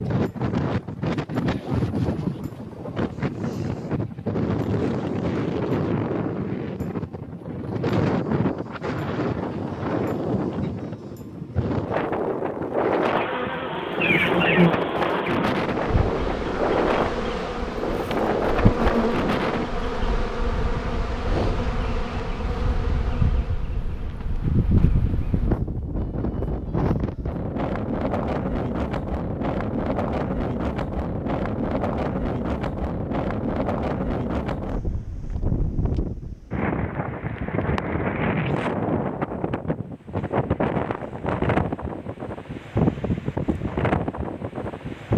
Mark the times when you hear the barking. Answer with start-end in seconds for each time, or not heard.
not heard.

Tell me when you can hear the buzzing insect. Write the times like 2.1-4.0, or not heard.
13.1-25.6.